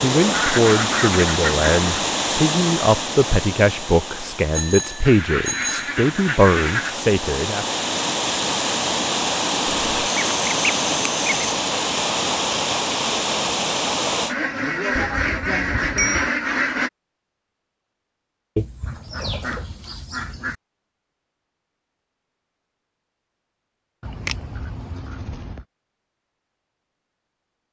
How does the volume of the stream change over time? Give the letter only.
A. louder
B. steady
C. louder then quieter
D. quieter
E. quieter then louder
E.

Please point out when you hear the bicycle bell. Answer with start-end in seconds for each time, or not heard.
4.5-5.9, 14.9-16.3.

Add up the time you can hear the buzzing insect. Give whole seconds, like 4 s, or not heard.
not heard.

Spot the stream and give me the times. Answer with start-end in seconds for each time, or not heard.
0.0-14.3.